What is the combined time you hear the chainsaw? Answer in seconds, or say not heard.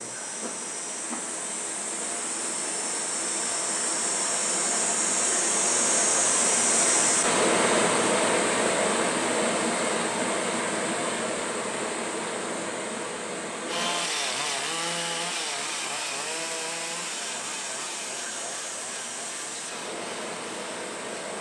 8 s.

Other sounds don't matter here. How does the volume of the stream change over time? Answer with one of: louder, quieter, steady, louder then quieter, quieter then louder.
louder then quieter.